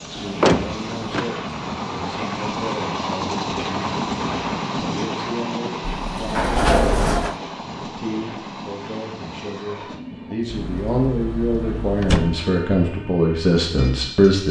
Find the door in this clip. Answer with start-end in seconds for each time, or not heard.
0.1-1.2, 6.0-7.3, 10.5-12.4.